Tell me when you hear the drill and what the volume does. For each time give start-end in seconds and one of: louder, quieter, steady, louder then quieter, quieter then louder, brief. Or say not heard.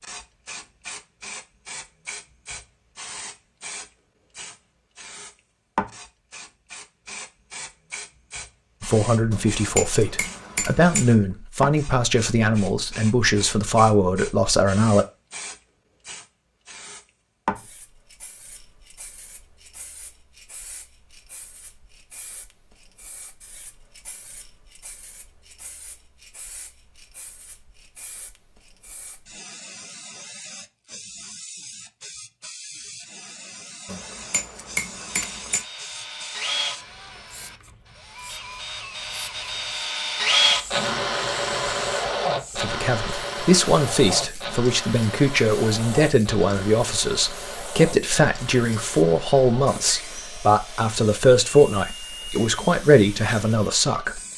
35.0-54.3 louder then quieter.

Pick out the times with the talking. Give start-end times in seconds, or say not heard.
8.8-15.1, 42.5-54.2.